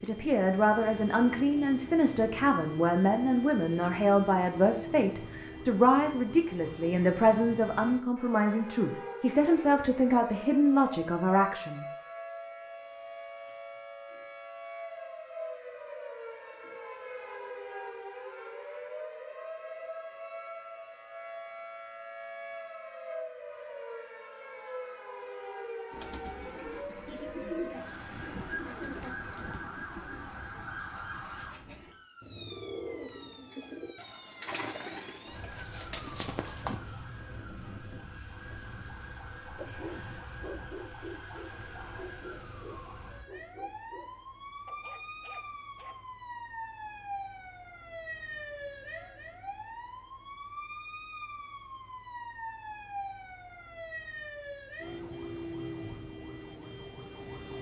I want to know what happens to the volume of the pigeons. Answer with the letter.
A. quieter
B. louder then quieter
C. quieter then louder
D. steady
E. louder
C.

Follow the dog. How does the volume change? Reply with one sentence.
The volume of the dog goes down.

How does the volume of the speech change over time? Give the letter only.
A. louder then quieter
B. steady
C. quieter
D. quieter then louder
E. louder
B.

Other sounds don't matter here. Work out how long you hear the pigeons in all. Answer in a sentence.
The pigeons can be heard for 11 seconds in total.